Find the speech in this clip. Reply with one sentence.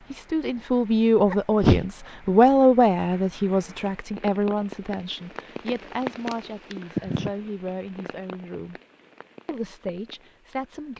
You can hear the speech from 0.1 to 8.8 s and from 9.4 to 10.9 s.